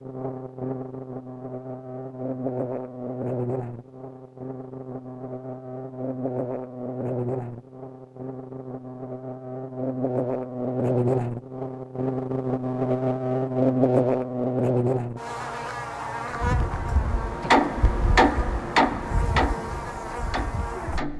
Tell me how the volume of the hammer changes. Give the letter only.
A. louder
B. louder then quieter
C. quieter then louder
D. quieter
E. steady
B.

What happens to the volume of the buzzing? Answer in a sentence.
The loudness of the buzzing goes up, then down.